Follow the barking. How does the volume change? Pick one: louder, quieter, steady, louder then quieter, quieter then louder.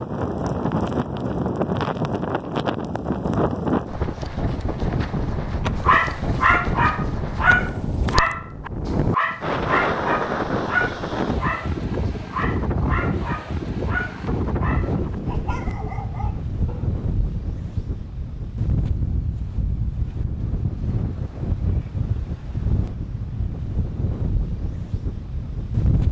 quieter.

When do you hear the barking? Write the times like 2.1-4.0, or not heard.
5.8-16.9.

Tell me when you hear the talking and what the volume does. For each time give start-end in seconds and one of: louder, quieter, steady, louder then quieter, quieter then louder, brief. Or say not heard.
not heard.